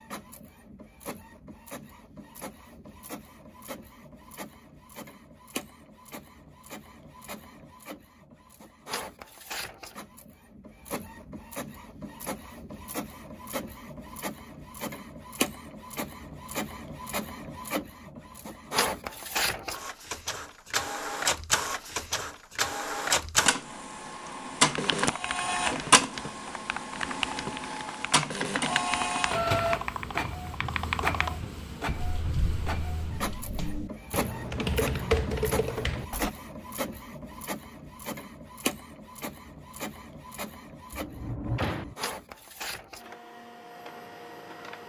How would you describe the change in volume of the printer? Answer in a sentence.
The loudness of the printer goes up, then down.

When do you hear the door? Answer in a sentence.
The door can be heard from 40.9 to 42.0 s.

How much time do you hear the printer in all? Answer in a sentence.
You can hear the printer for 45 seconds altogether.